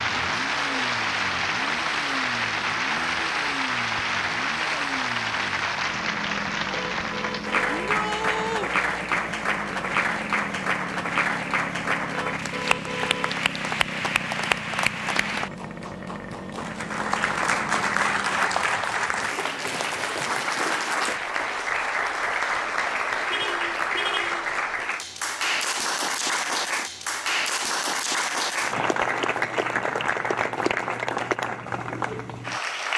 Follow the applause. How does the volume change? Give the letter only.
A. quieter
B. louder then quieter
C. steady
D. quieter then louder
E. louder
C.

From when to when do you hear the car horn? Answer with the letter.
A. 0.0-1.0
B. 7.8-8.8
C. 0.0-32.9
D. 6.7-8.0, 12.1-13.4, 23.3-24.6
D.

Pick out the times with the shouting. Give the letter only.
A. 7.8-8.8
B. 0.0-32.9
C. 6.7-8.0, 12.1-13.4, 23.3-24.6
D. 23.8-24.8
A.